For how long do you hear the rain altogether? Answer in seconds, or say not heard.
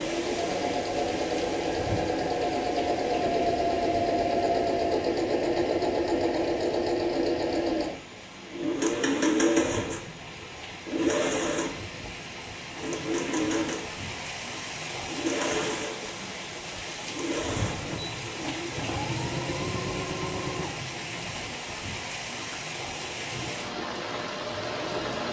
25 s.